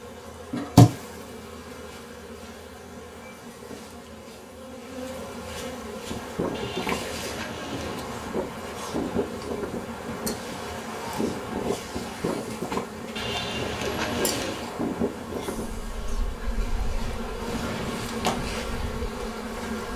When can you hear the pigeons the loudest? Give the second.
14 s.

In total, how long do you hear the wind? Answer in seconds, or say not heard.
14 s.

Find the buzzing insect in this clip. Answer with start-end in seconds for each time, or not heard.
0.0-19.9.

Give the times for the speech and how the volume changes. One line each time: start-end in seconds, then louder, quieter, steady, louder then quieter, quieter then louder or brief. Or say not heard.
not heard.